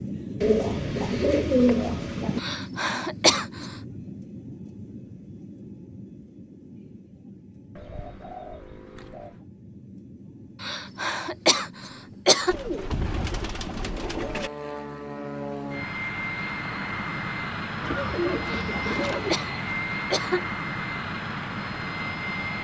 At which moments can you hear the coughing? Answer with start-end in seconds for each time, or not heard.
2.4-3.7, 10.6-12.6, 18.4-20.4.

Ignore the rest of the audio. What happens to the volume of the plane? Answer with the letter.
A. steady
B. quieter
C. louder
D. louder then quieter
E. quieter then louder
E.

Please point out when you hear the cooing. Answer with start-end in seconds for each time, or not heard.
0.4-2.4, 7.8-9.4, 12.4-14.5, 17.8-19.4.